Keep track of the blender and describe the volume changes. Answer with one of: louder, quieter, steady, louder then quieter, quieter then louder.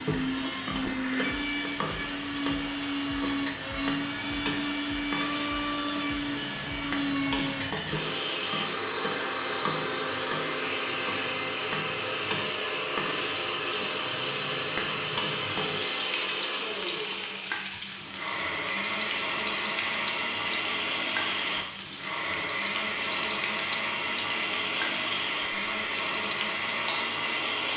steady.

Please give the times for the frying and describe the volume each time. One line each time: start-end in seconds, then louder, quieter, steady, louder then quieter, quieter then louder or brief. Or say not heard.
0.0-27.7 steady.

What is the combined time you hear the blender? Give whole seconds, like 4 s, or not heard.
28 s.